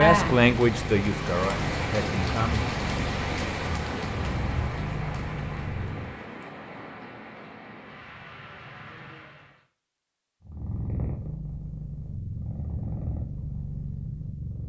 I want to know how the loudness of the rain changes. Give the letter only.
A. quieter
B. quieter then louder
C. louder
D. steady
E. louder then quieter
A.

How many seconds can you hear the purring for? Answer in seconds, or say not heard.
10 s.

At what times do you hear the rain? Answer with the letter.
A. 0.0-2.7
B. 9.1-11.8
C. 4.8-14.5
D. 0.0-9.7
D.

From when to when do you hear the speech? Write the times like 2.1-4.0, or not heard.
0.0-2.7.